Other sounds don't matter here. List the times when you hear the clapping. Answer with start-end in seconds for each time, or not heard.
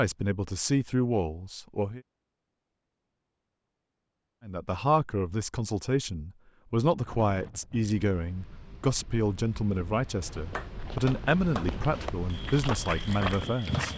10.5-13.9.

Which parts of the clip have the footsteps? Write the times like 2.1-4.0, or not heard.
10.2-13.9.